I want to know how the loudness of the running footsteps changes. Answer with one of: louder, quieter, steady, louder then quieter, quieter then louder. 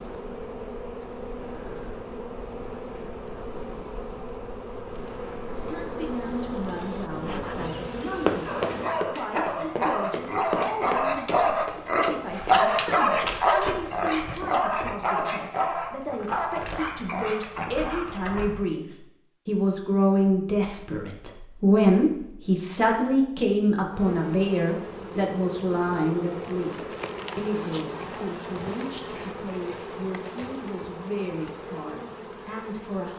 quieter.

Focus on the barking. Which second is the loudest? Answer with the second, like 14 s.
13 s.